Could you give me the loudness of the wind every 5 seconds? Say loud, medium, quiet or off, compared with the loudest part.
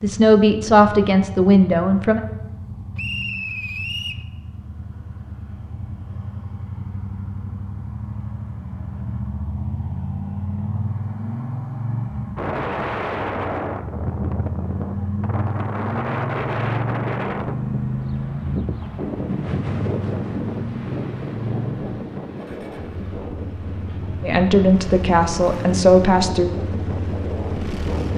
off, off, loud, loud, loud, loud.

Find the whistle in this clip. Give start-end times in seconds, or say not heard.
3.0-4.2.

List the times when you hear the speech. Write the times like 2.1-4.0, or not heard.
0.0-2.2, 24.2-26.5.